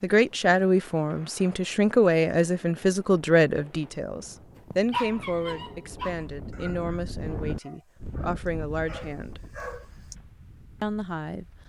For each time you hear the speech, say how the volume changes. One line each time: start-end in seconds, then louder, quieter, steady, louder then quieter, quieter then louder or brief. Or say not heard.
0.0-9.4 quieter
10.8-11.4 brief.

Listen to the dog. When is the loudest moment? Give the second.
5 s.